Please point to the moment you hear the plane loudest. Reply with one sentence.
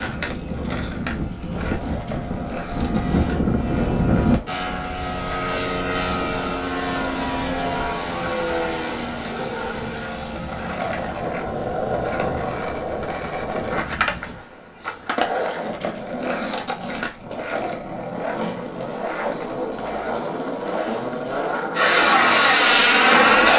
The loudest moment of the plane is at 23 seconds.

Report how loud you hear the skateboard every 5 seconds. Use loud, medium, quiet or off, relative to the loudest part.
medium, medium, loud, loud, loud.